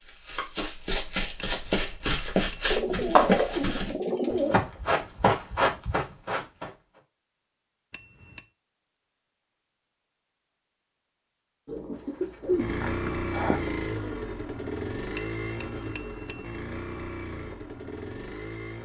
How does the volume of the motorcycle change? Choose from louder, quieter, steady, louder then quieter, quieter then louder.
quieter.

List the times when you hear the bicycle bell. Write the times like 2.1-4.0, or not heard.
1.4-2.8, 7.9-8.6, 15.2-16.6.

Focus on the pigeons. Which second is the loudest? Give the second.
3 s.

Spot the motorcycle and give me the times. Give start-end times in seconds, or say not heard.
12.4-18.7.